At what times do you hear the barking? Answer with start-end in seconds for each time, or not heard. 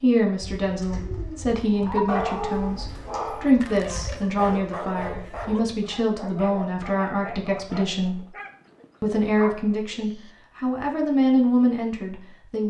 1.7-10.3.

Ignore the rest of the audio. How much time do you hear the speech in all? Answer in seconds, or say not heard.
12 s.